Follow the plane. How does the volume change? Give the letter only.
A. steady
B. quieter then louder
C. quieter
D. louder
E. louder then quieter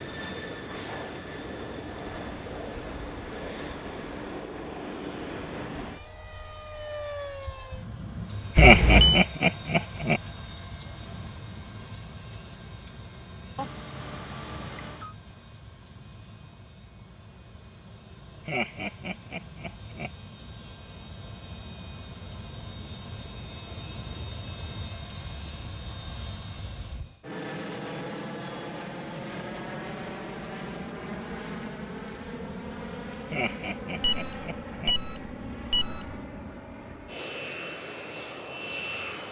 B.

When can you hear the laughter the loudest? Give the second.
9 s.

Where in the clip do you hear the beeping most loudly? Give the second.
9 s.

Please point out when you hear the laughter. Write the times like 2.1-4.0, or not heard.
8.6-10.2, 18.4-20.1, 33.3-35.0.